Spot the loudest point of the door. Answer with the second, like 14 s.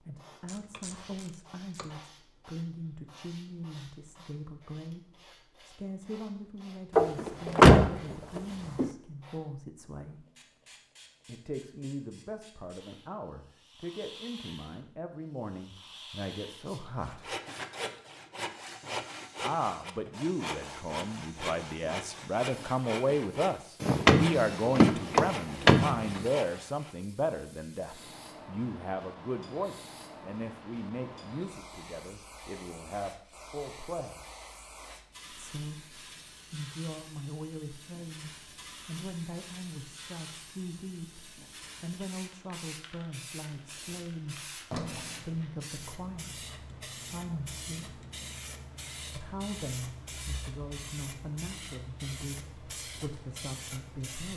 8 s.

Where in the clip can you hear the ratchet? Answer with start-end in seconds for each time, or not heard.
0.5-2.1.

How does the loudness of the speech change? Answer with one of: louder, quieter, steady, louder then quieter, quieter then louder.
louder then quieter.